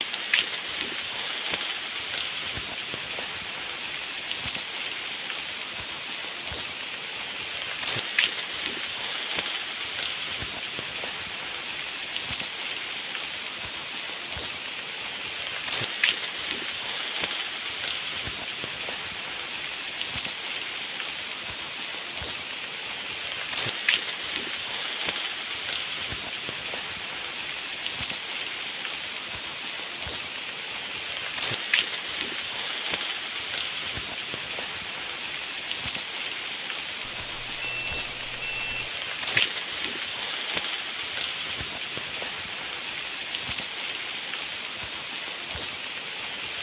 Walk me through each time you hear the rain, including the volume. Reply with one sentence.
You can hear the rain from 0.0 to 46.5 s, at a steady volume.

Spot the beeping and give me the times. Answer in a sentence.
You can hear the beeping from 37.0 to 38.9 s.